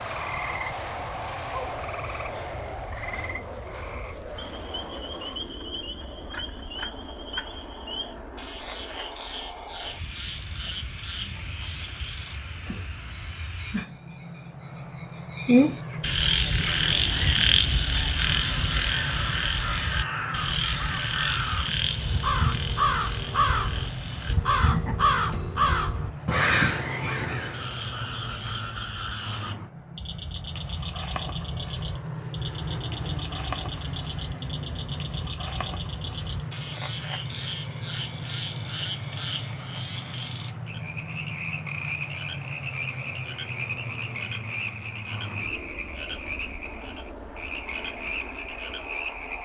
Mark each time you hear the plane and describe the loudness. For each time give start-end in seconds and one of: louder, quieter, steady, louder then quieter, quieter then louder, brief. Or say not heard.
0.0-49.3 steady.